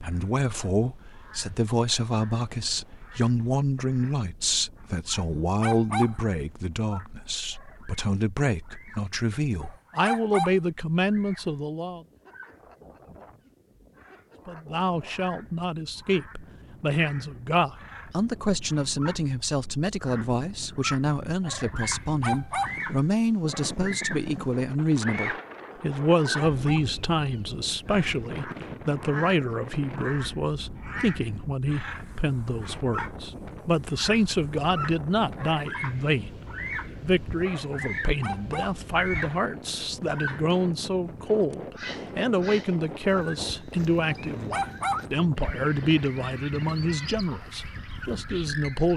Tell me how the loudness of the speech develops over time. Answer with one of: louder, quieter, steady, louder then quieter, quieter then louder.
steady.